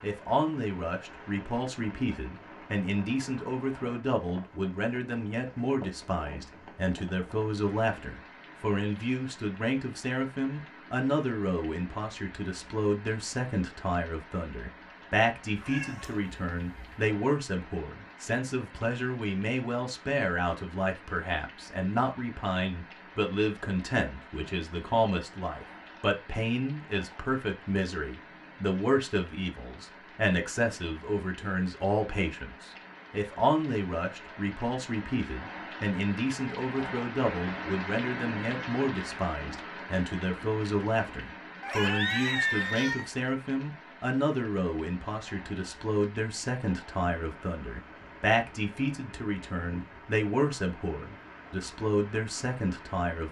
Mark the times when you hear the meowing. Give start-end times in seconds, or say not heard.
15.6-16.9, 41.6-43.1.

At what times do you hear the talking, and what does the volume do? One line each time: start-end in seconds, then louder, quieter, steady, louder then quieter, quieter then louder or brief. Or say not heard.
0.0-53.2 steady.